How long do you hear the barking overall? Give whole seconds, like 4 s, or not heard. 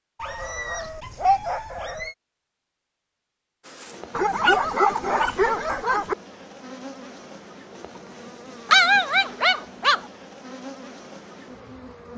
5 s.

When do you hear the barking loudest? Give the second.
9 s.